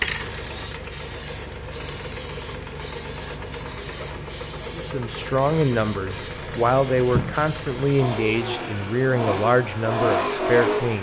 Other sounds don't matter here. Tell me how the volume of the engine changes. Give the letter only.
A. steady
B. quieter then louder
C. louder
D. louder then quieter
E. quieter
C.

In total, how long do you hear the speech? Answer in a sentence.
You can hear the speech for 6 seconds altogether.